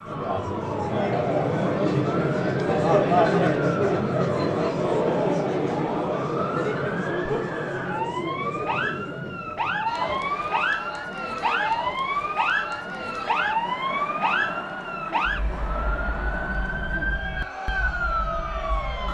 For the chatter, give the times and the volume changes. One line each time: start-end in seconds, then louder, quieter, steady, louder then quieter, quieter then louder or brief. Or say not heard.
0.0-19.0 quieter.